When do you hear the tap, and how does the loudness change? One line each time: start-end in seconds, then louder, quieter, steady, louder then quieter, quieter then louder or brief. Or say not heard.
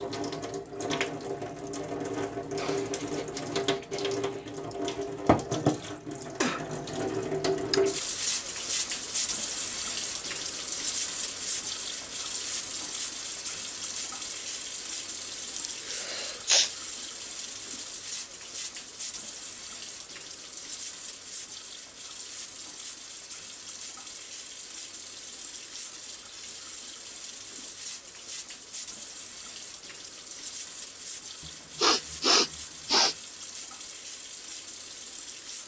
0.0-35.6 quieter.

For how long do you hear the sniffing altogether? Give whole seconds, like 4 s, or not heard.
4 s.